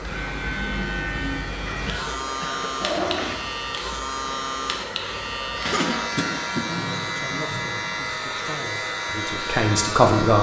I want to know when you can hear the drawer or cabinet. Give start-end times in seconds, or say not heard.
not heard.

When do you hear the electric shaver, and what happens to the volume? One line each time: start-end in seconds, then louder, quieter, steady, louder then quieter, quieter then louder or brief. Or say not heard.
0.0-10.3 steady.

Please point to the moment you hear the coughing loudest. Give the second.
6 s.